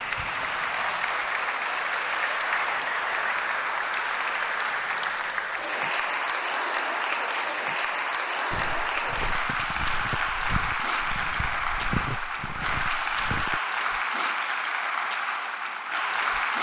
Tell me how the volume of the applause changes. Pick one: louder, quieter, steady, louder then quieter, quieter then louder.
steady.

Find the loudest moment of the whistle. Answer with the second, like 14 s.
3 s.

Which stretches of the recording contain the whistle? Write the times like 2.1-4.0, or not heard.
2.5-3.5, 9.4-10.2.